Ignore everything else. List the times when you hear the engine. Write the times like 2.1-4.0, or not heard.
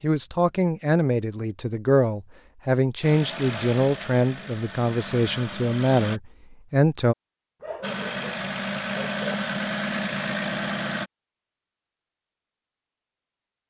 3.0-6.2, 7.8-11.1.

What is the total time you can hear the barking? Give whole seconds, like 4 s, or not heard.
2 s.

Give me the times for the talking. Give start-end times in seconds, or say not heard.
0.0-7.2.